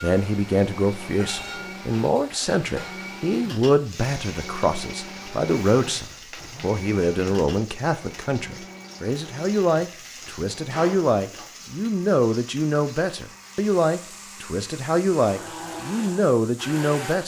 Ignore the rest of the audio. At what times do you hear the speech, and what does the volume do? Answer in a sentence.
The speech can be heard from 0.0 to 17.2 s, at a steady volume.